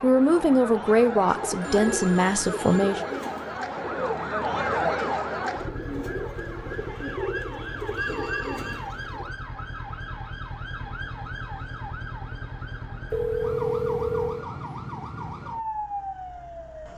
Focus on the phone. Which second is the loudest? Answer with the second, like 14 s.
14 s.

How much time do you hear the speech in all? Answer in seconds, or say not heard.
3 s.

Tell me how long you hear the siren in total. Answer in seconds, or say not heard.
17 s.